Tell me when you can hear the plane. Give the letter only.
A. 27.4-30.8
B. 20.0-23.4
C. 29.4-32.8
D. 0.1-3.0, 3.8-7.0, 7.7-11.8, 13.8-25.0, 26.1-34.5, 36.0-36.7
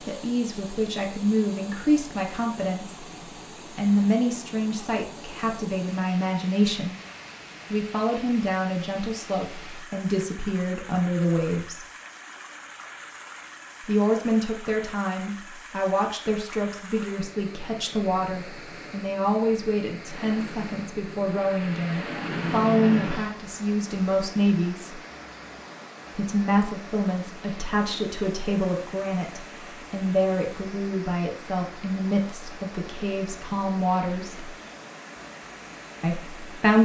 B.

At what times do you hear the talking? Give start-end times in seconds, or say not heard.
0.1-3.0, 3.8-7.0, 7.7-11.8, 13.8-25.0, 26.1-34.5, 36.0-36.7.